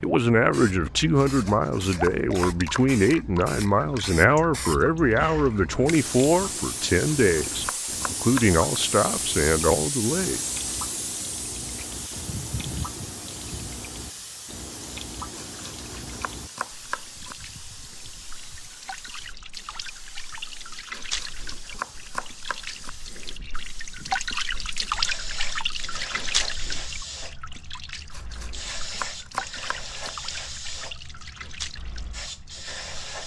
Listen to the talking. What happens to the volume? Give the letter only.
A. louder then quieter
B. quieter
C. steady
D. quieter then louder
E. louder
C.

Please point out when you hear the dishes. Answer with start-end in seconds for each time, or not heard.
not heard.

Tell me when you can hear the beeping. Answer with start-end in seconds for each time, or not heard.
not heard.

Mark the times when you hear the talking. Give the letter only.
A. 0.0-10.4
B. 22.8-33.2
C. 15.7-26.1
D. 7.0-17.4
A.